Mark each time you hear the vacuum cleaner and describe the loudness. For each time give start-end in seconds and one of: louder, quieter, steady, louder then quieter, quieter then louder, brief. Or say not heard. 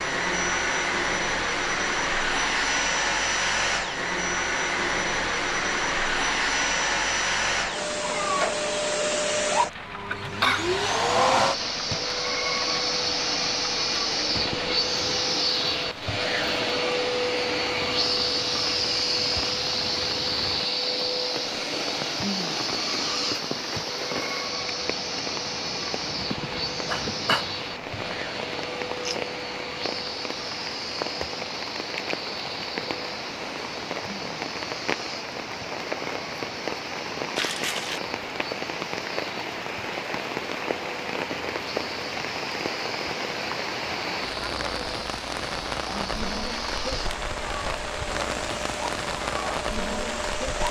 0.0-50.6 quieter.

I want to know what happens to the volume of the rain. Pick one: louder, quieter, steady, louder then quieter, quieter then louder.
louder.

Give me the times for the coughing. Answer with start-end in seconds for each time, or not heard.
10.1-10.8, 26.3-27.4, 37.4-38.0.